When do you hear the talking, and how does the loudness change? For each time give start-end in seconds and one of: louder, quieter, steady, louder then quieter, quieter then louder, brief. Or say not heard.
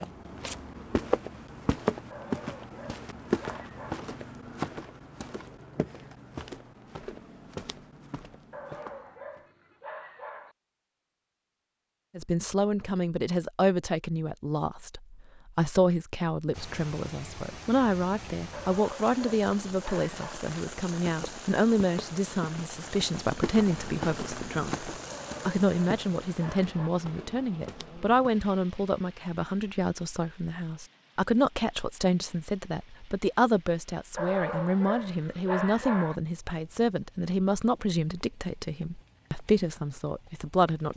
12.2-40.9 steady.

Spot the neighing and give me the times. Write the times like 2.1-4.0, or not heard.
not heard.